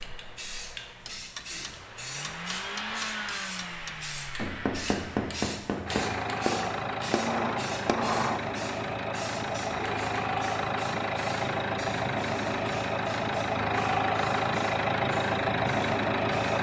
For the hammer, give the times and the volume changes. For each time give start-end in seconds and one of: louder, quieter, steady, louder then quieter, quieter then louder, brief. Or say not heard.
1.1-8.4 louder.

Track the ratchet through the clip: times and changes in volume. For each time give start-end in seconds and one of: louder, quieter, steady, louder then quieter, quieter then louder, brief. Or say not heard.
not heard.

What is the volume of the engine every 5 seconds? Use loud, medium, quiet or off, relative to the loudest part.
quiet, medium, loud, loud.